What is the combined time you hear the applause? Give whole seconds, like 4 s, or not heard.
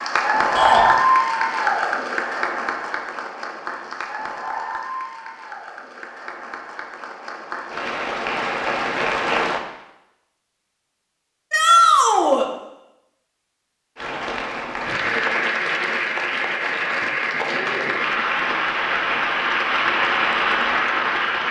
17 s.